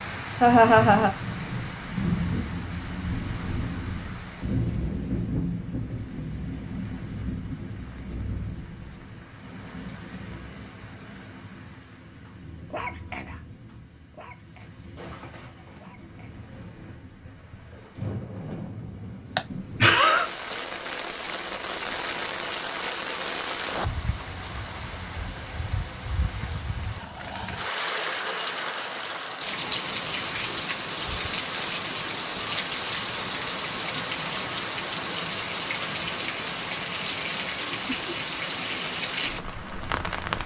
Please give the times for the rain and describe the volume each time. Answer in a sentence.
You can hear the rain from 0.0 to 40.4 s, getting quieter then louder.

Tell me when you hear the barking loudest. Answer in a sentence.
The volume of the barking peaks at 13 seconds.